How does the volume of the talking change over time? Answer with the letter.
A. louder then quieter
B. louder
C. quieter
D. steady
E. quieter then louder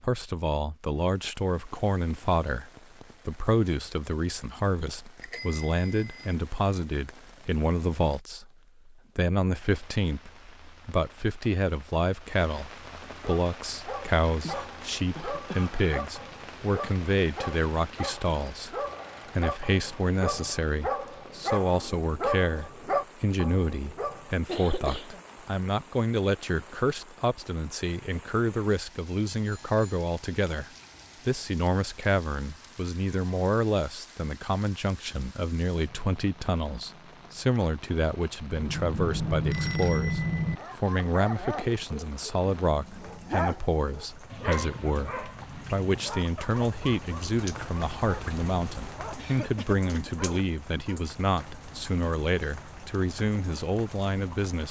D.